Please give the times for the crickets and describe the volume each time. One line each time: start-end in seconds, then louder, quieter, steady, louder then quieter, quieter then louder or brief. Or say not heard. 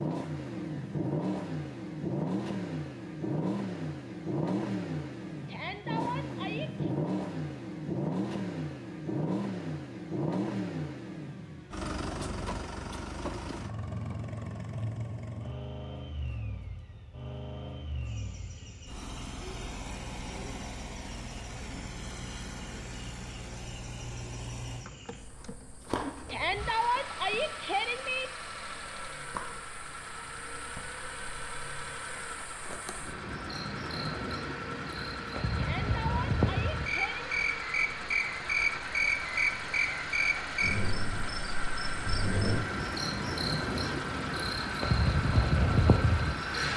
18.1-46.7 louder.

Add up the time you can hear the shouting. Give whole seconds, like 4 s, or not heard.
5 s.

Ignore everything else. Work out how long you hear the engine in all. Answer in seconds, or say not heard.
47 s.